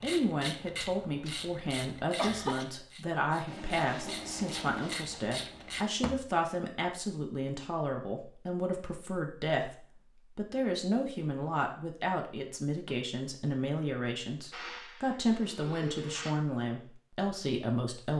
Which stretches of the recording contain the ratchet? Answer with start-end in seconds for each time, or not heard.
0.0-6.2.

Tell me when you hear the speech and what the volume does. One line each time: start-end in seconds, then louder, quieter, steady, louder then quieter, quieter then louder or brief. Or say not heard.
0.0-18.1 steady.